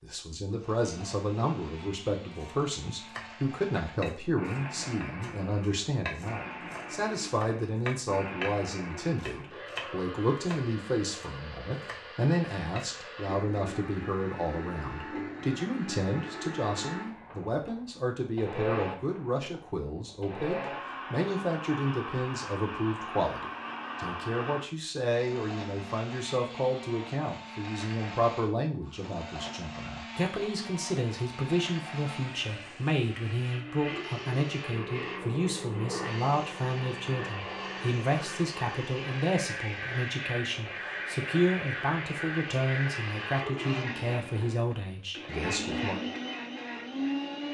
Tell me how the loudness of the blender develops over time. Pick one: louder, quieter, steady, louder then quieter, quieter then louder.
louder.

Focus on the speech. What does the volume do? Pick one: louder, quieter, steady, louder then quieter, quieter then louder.
steady.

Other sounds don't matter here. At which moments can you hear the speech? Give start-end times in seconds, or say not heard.
0.0-46.0.